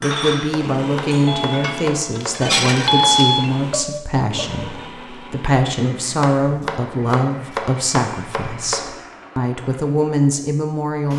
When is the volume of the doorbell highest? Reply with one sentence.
The loudest moment of the doorbell is at 3 seconds.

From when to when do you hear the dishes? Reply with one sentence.
You can hear the dishes from 0.0 to 4.5 s.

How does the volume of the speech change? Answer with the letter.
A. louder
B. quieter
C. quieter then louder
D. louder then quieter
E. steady
E.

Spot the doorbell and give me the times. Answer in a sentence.
The doorbell can be heard from 1.2 to 3.5 s.